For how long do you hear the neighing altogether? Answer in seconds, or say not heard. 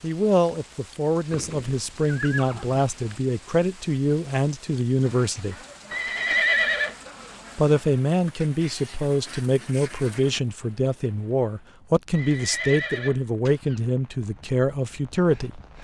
5 s.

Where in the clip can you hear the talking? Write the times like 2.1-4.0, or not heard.
0.0-5.5, 7.5-15.6.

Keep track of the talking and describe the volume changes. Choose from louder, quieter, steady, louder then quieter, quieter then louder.
steady.